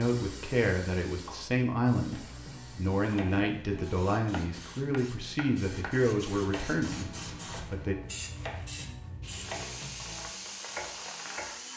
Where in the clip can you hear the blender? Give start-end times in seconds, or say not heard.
9.2-11.7.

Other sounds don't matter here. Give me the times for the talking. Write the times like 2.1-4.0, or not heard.
0.0-8.0.